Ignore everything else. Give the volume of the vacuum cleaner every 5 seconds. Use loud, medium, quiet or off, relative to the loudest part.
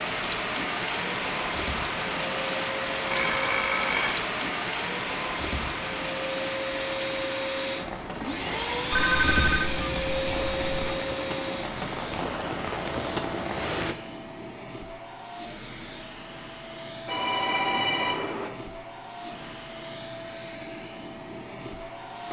medium, loud, loud, medium, medium.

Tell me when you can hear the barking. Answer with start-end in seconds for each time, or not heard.
not heard.